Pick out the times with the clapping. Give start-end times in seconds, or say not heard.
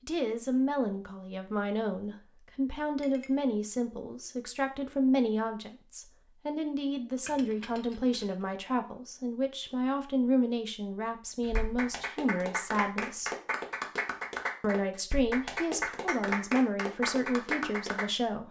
11.4-18.1.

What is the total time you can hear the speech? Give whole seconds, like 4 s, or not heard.
17 s.